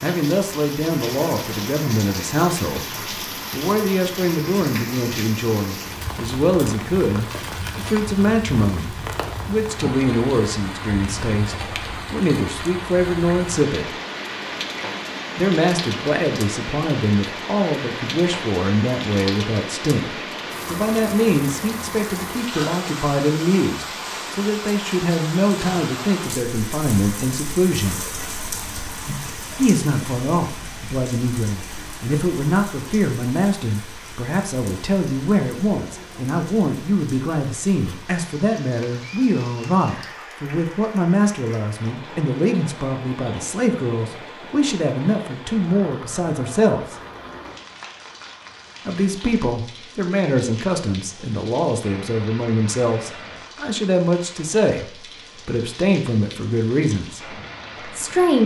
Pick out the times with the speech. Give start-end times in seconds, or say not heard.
0.0-13.9, 15.3-28.0, 29.6-47.0, 48.9-58.4.